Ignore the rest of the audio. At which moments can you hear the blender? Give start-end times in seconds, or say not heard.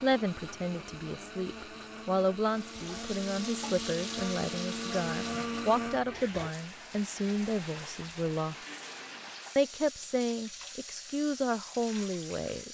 0.0-6.5.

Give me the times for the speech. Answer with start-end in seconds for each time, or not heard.
0.0-8.6, 9.6-12.6.